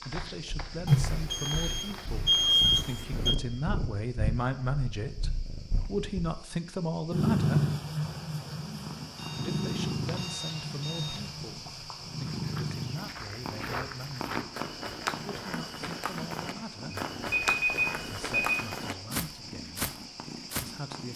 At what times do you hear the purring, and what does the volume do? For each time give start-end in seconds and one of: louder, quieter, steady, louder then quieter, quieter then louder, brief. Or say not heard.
0.1-21.1 louder then quieter.